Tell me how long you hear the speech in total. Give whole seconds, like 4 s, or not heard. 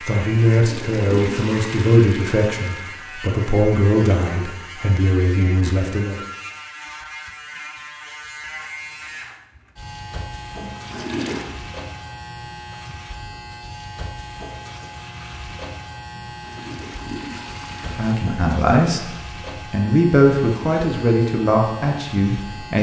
11 s.